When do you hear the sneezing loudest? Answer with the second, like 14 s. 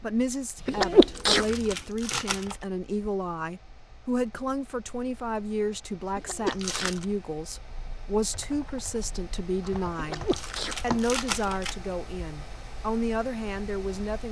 1 s.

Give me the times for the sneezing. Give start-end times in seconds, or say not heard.
0.7-2.2, 6.2-7.0, 9.9-11.5.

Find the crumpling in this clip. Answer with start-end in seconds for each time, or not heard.
1.1-2.6, 6.5-7.0, 10.2-11.8.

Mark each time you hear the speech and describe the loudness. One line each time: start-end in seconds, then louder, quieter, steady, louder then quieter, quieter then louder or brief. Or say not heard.
0.0-14.2 steady.